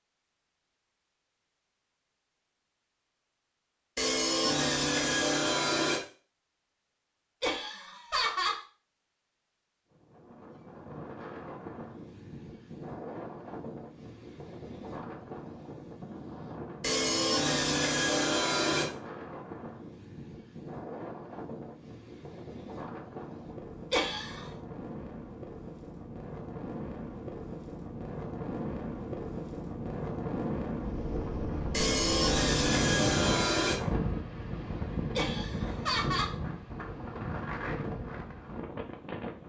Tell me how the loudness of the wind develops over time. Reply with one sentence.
The loudness of the wind goes up.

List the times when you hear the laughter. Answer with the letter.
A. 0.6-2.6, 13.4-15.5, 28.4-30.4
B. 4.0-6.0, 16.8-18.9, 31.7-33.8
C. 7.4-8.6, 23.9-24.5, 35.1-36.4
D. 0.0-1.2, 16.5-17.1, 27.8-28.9
C.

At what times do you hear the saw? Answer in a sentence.
The saw can be heard from 4.0 to 6.0 s, from 16.8 to 18.9 s and from 31.7 to 33.8 s.